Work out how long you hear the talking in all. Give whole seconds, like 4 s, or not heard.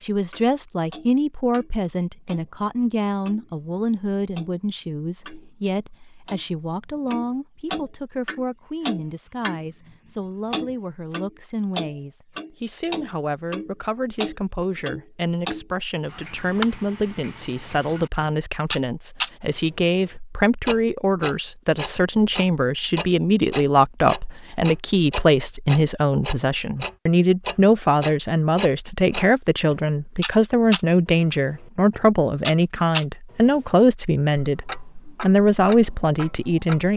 37 s.